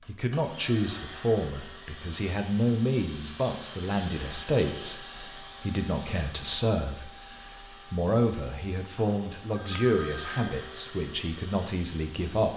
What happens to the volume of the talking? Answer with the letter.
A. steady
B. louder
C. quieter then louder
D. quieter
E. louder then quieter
A.